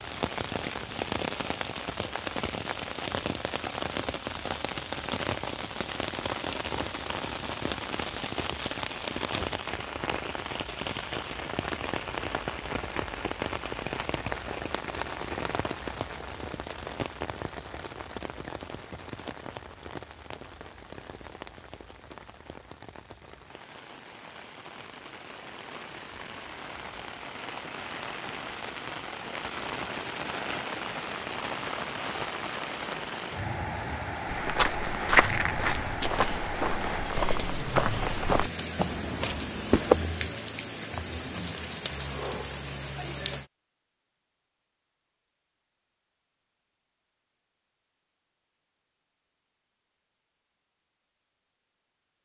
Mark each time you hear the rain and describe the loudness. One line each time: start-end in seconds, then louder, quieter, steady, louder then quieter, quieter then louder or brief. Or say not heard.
0.0-43.5 quieter then louder.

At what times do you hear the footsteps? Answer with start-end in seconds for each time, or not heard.
34.2-40.1.